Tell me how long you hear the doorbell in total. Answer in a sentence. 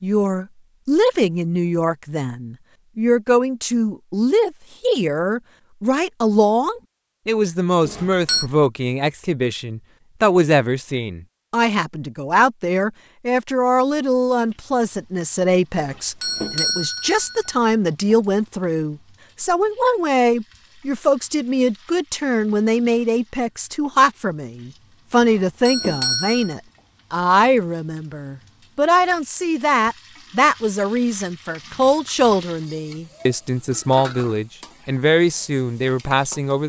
The doorbell can be heard for 4 seconds in total.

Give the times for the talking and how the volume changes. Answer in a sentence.
You can hear the talking from 0.0 to 36.6 s, at a steady volume.